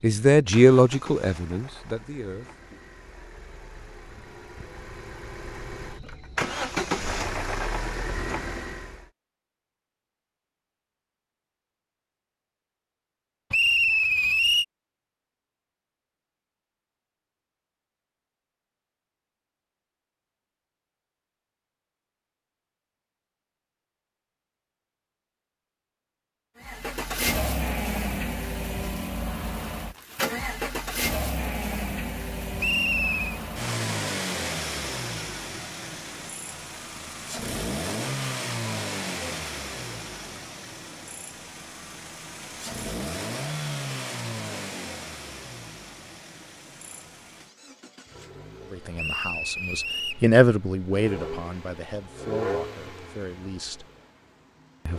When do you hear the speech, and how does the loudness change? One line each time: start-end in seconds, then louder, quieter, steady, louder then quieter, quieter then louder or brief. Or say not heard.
0.0-2.8 brief
48.6-53.9 louder then quieter.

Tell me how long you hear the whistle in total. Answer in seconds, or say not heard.
3 s.